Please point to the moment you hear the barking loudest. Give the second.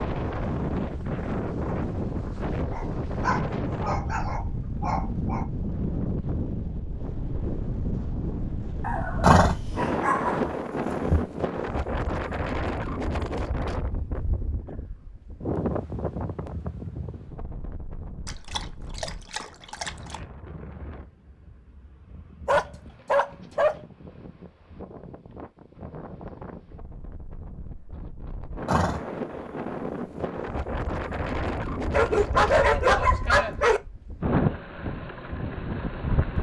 33 s.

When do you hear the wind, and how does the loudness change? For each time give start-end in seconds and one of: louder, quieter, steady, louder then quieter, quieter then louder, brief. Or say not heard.
0.0-36.3 quieter then louder.